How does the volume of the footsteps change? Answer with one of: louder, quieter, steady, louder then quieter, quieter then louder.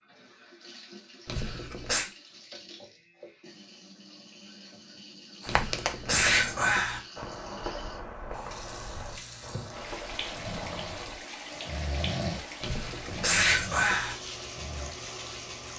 quieter.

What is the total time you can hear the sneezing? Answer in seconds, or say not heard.
4 s.